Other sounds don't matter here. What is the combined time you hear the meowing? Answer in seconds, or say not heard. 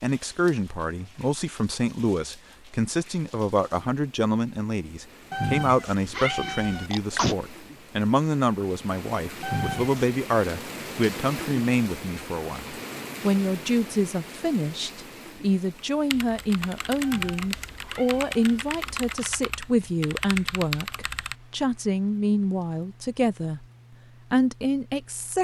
4 s.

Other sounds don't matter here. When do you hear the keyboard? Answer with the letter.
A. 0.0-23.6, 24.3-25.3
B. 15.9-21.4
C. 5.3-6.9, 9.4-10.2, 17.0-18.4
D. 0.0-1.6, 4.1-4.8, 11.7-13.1
B.